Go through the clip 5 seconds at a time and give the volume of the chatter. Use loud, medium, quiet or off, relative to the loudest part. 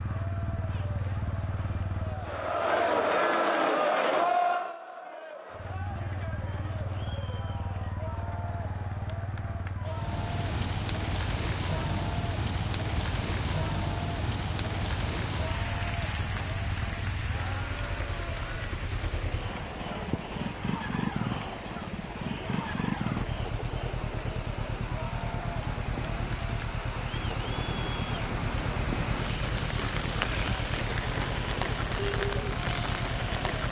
loud, quiet, quiet, quiet, quiet, quiet, quiet.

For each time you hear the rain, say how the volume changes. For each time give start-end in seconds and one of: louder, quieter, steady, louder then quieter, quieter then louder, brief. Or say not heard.
9.8-33.6 quieter then louder.